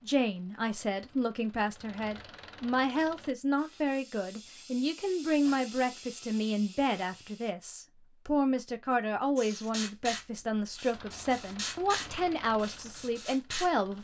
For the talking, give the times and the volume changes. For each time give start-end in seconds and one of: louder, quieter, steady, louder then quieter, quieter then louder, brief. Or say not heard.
0.0-14.0 steady.